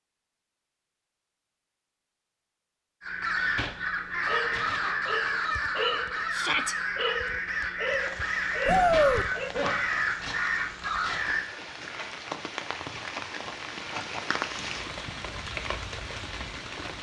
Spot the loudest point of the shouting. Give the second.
9 s.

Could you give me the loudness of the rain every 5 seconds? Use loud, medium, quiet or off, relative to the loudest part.
off, medium, loud, loud.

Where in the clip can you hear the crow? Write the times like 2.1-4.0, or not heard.
3.0-11.4.